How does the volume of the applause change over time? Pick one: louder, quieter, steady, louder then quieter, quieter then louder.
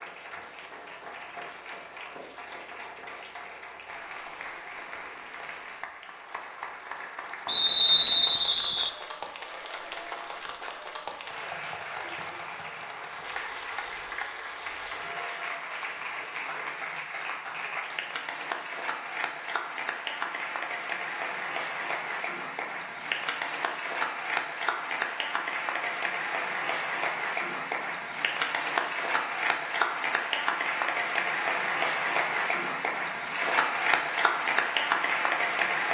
louder.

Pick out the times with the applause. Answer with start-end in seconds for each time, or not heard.
0.0-35.8.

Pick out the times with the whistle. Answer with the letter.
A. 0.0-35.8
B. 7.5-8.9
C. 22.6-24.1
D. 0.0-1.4
B.